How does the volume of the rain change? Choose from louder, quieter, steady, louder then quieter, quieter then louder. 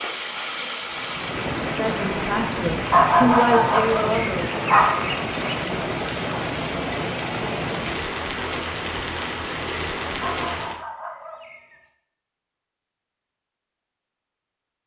steady.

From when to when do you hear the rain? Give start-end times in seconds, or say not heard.
0.0-10.8.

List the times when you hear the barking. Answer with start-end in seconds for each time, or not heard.
2.9-5.6, 10.2-11.8.